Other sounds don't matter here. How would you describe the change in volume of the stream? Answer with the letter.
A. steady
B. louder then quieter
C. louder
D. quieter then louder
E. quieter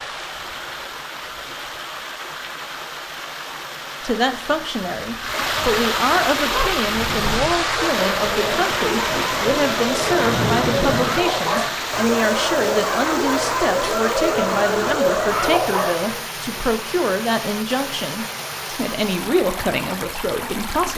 B.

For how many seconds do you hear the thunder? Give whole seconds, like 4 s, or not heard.
3 s.